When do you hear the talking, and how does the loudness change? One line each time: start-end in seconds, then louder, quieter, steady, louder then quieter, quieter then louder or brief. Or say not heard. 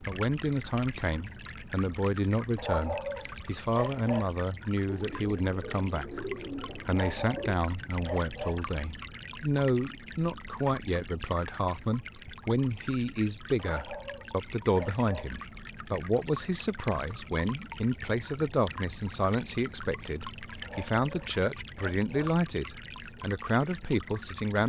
0.0-24.6 steady.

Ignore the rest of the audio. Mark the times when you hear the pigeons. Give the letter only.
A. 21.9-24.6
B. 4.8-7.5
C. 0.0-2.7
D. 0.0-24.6
B.